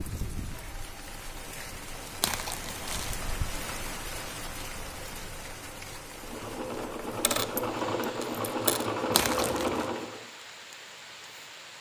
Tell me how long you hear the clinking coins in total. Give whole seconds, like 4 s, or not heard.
2 s.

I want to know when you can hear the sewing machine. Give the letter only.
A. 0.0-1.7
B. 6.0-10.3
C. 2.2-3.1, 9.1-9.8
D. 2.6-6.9
B.